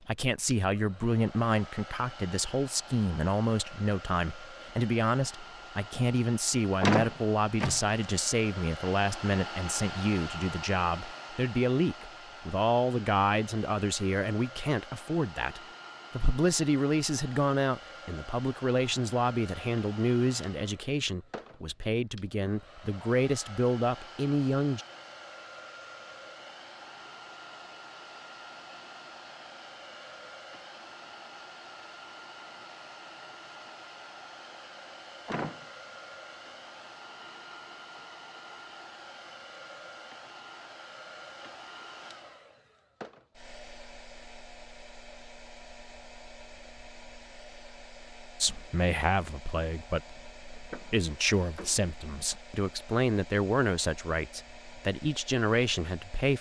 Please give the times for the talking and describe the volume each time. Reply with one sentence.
The talking can be heard from 0.1 to 24.9 s, at a steady volume; and from 48.4 to 56.3 s, at a steady volume.